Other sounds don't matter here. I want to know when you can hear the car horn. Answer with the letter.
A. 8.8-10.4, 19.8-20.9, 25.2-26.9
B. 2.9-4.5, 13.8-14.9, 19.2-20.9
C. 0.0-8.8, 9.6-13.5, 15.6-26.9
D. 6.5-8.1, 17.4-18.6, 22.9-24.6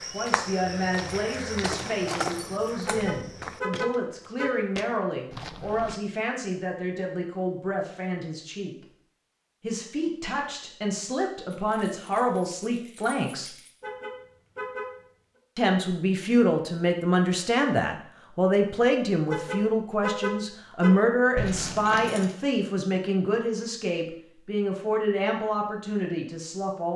B.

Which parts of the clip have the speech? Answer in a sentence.
The speech can be heard from 0.0 to 8.8 s, from 9.6 to 13.5 s and from 15.6 to 26.9 s.